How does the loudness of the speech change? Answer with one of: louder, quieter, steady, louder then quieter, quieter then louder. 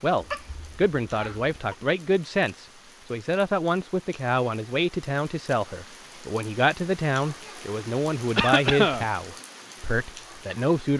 steady.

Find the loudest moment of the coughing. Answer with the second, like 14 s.
9 s.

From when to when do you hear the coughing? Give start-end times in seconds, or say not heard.
0.2-1.8, 8.3-9.1.